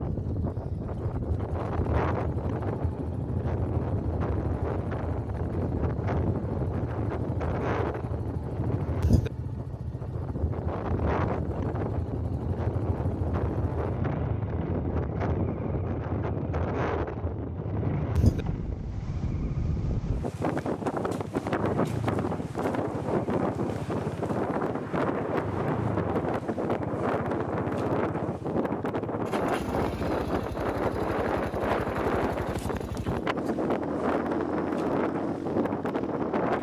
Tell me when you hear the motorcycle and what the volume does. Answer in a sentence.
The motorcycle can be heard from 0.0 to 36.5 s, at a steady volume.